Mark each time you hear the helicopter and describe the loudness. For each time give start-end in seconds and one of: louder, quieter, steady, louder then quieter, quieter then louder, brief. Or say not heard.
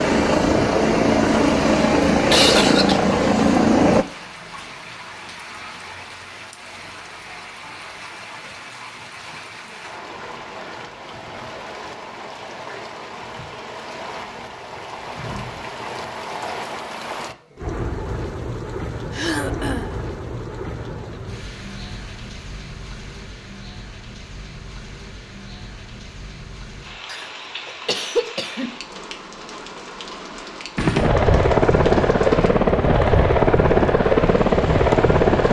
0.0-4.0 steady
30.8-35.4 steady.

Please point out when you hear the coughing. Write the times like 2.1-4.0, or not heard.
2.3-3.0, 19.1-19.9, 27.1-28.7.